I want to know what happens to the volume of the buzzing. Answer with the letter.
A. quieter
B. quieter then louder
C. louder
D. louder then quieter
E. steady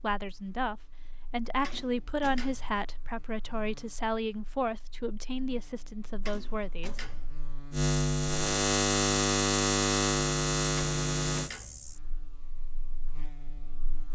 D.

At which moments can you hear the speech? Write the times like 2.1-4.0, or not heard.
0.0-7.0.